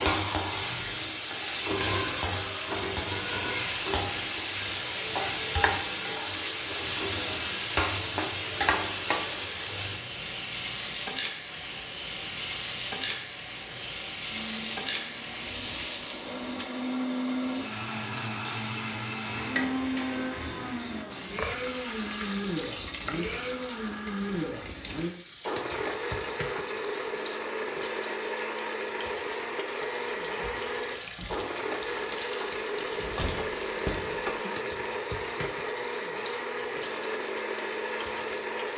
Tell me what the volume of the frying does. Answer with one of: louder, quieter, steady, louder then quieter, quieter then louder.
quieter.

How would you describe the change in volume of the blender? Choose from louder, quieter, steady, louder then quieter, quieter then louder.
louder.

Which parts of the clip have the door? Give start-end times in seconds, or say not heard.
32.8-34.5.